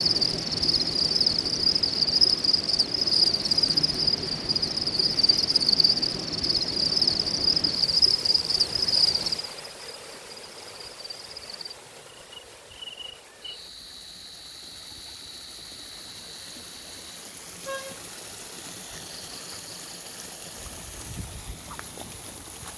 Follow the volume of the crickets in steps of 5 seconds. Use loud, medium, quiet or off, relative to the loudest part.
loud, loud, quiet, quiet, quiet.